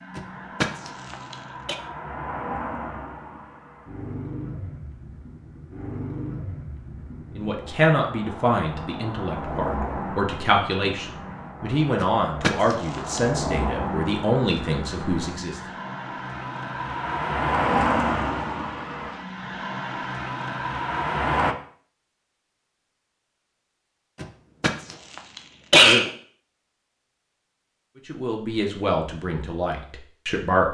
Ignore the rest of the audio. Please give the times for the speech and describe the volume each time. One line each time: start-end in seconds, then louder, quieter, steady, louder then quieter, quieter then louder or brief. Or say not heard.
7.3-15.6 steady
28.1-30.7 brief.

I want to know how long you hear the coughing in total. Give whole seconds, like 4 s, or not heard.
5 s.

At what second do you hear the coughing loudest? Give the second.
26 s.